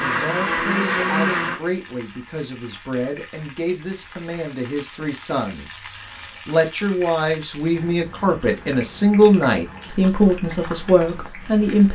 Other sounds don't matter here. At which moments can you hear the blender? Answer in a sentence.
The blender can be heard from 0.0 to 1.6 s.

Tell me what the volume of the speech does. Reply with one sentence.
The volume of the speech goes up.